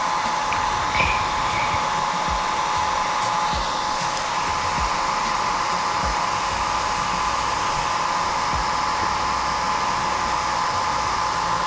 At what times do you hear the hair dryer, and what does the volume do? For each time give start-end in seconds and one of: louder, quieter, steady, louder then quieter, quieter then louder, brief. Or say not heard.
0.0-11.6 steady.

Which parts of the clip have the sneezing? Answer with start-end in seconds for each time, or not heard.
0.5-1.9.